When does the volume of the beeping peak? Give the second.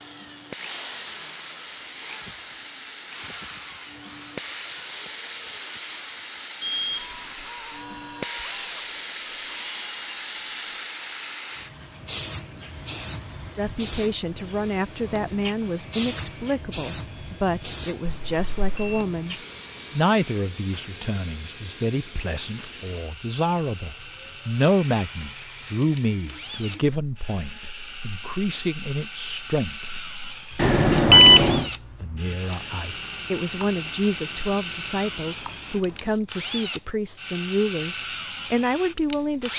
31 s.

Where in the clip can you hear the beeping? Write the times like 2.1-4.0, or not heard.
6.6-7.2, 18.1-18.9, 30.6-31.6.